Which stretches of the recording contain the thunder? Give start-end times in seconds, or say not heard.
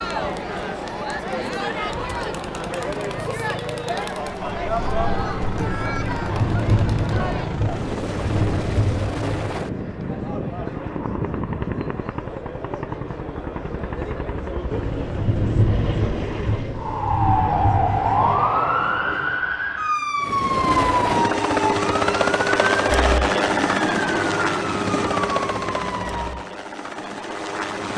5.8-9.5, 14.7-18.4.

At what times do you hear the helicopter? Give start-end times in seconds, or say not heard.
0.0-16.8, 20.2-27.9.